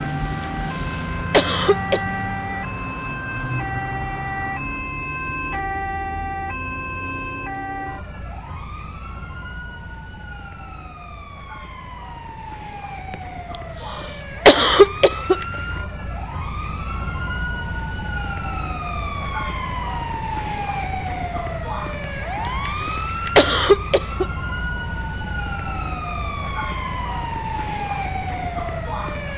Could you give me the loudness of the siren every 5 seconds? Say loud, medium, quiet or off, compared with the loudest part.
loud, loud, medium, loud, loud, loud.